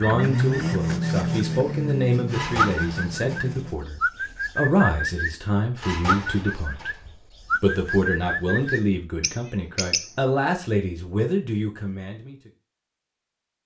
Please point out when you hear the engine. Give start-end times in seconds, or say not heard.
0.0-3.9.